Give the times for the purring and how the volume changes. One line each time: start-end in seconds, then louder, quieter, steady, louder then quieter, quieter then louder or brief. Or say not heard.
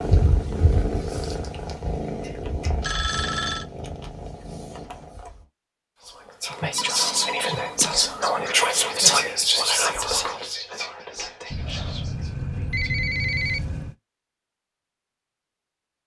0.0-5.5 quieter.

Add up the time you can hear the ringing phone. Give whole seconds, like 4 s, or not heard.
5 s.